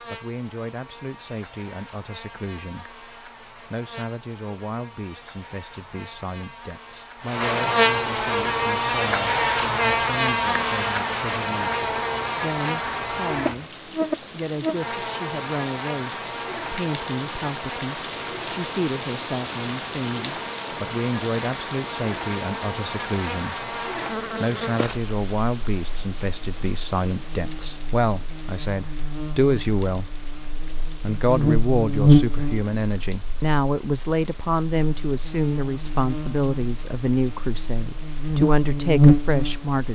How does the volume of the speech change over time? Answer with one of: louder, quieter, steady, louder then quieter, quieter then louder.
louder.